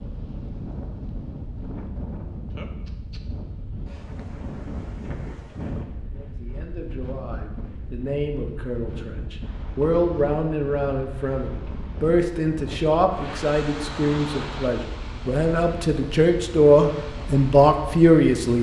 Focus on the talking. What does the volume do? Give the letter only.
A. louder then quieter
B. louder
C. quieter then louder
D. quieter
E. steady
B.